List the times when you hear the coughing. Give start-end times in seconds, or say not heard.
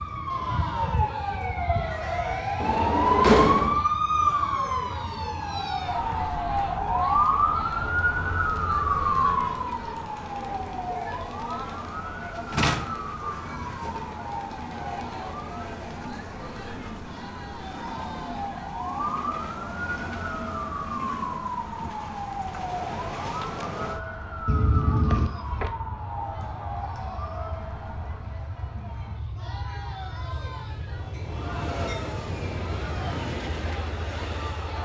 not heard.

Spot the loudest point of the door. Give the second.
3 s.